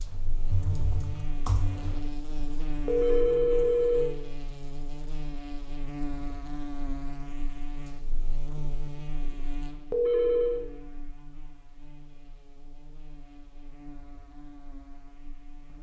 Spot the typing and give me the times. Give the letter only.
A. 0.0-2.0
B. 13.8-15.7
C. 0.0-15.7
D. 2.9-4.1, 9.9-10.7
A.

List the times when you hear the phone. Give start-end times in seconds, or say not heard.
2.9-4.1, 9.9-10.7.